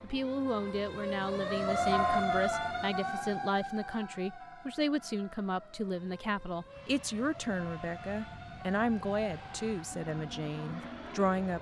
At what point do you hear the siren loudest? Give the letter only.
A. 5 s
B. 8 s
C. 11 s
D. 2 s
D.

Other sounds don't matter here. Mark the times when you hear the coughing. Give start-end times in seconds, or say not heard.
not heard.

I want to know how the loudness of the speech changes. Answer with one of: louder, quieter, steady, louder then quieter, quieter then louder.
steady.